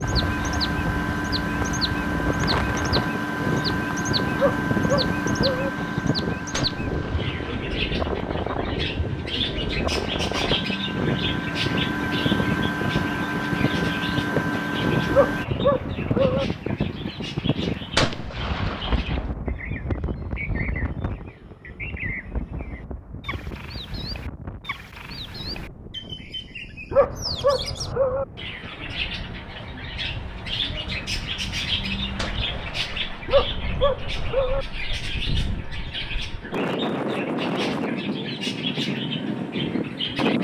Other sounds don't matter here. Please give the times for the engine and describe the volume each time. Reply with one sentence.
You can hear the engine from 0.0 to 15.4 s, getting quieter then louder.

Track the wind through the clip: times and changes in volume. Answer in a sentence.
You can hear the wind from 0.0 to 40.3 s, getting quieter then louder.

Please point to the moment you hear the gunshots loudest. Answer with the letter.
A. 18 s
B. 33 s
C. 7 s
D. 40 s
A.